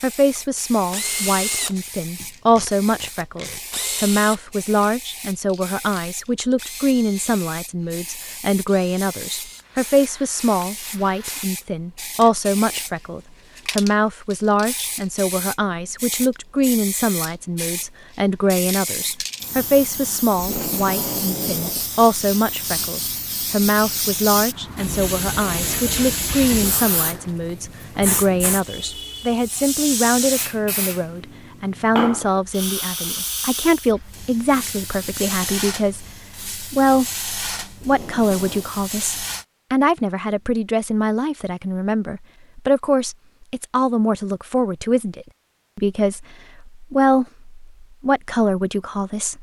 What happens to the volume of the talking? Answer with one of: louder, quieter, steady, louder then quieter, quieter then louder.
steady.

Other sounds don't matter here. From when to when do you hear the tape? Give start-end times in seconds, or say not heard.
2.5-3.6, 20.4-21.9, 37.8-38.8.